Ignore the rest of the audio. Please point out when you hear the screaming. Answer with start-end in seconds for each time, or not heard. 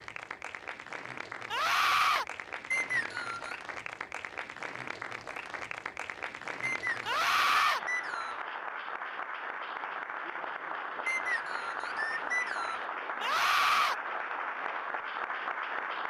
1.5-2.2, 7.0-7.8, 13.2-13.9.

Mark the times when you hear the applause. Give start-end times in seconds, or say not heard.
0.0-16.0.